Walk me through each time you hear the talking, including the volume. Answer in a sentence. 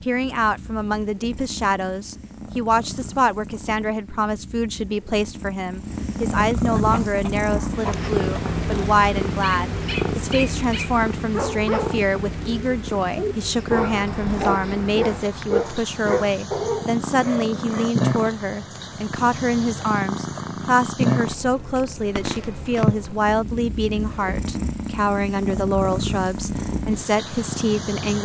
You can hear the talking from 0.0 to 28.2 s, at a steady volume.